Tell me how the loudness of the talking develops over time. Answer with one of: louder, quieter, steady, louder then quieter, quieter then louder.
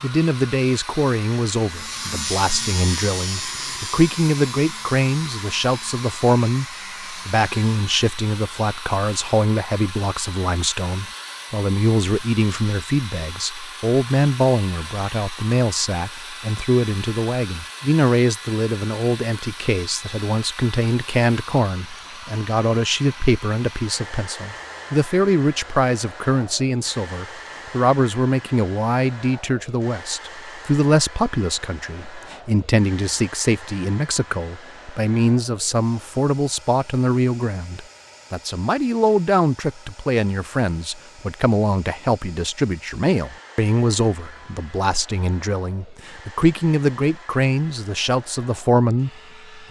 steady.